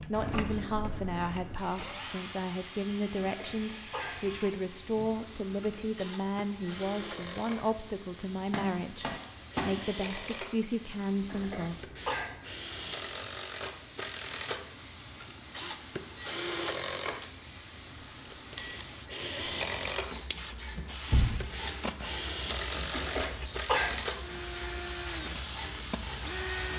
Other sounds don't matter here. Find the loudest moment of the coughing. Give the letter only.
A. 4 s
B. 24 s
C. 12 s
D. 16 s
B.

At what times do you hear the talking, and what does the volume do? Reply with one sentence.
The talking can be heard from 0.0 to 11.8 s, at a steady volume.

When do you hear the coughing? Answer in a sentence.
The coughing can be heard from 3.1 to 4.2 s, from 11.2 to 12.3 s and from 22.9 to 24.0 s.